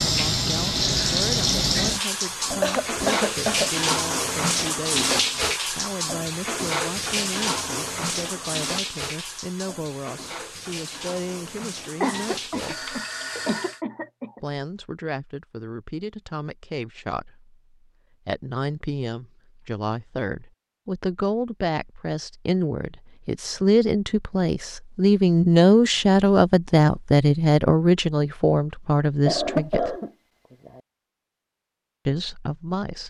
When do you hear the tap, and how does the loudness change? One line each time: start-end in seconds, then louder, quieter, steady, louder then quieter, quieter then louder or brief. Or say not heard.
0.0-13.8 quieter.